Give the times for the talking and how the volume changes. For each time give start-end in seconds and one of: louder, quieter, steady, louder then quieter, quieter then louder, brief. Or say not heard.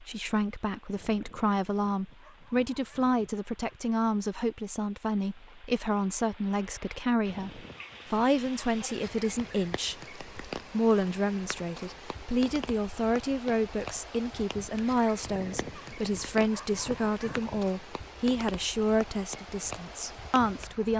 0.0-20.9 steady.